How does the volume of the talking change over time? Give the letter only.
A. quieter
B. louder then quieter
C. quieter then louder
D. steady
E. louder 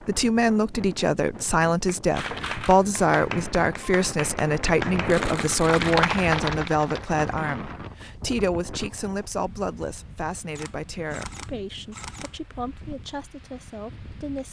A.